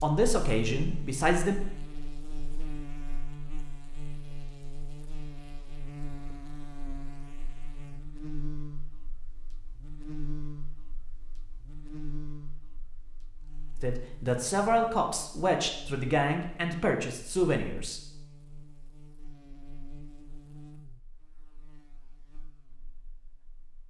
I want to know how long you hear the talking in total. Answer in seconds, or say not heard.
6 s.